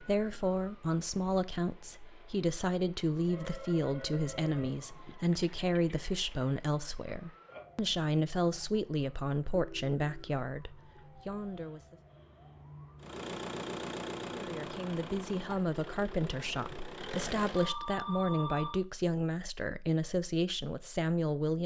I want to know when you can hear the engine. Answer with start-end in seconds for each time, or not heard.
13.0-17.8.